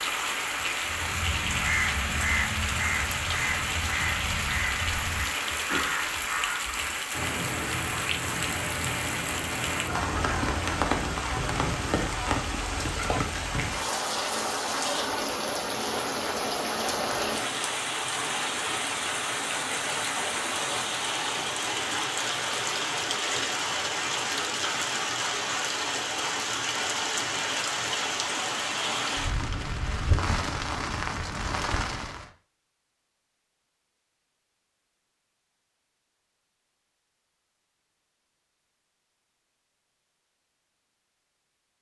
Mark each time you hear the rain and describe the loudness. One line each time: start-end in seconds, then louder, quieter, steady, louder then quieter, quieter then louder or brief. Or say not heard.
0.0-32.3 steady.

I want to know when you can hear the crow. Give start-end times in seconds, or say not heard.
0.8-12.0.